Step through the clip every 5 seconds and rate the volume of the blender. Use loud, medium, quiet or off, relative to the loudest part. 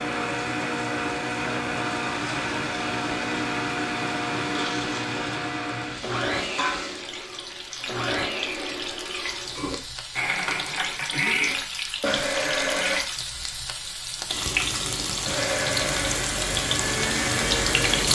loud, medium, loud, loud.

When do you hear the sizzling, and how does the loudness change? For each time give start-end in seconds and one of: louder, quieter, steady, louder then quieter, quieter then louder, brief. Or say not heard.
0.2-18.1 louder.